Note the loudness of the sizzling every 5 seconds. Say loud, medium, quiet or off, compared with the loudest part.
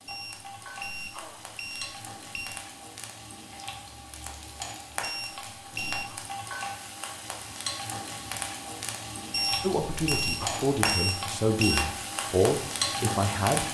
medium, medium, loud.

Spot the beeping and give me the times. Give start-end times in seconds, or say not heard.
0.1-2.6, 5.0-6.2, 9.3-11.8.